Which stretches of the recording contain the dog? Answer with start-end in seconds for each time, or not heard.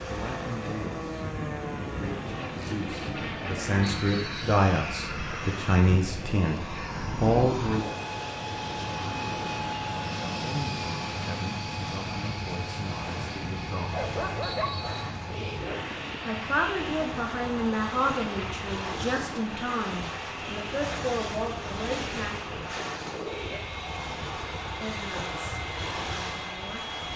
13.9-15.7.